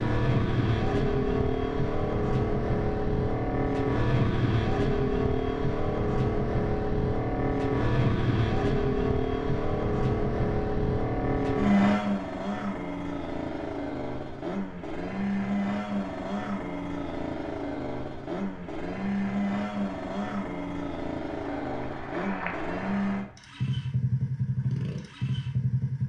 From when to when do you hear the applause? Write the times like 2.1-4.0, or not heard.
21.4-23.4.